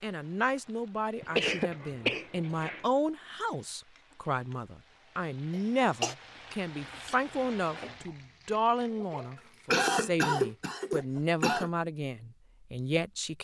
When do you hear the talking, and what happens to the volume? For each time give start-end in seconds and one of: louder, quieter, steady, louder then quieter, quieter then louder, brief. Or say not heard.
0.0-13.3 steady.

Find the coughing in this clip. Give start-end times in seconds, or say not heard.
1.2-2.9, 5.5-6.2, 9.7-11.7.